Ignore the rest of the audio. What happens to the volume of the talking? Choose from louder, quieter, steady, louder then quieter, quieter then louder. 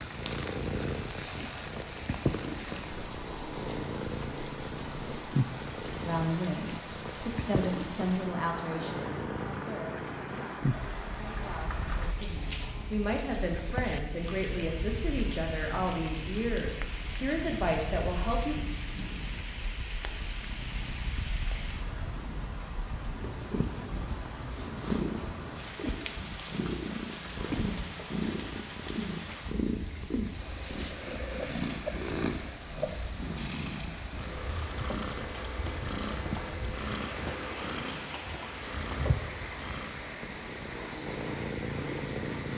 quieter then louder.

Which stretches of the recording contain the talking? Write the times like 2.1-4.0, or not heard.
6.0-18.6.